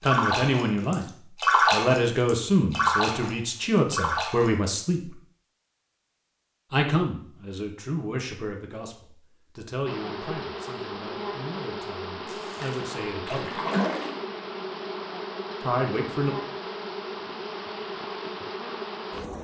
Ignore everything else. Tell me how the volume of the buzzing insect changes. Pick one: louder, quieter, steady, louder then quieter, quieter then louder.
steady.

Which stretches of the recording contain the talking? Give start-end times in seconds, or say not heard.
0.0-1.1, 1.7-5.2, 6.7-13.6, 15.6-16.4.